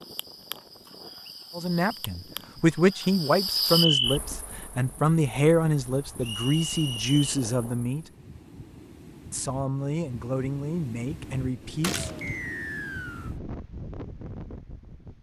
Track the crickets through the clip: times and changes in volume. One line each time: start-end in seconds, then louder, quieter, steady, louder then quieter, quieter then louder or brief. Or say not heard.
0.0-8.1 louder then quieter.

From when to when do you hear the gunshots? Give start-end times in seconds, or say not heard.
11.8-12.3.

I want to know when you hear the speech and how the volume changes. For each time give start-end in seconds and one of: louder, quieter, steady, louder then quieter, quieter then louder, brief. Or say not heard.
1.6-8.1 steady
9.3-12.2 brief.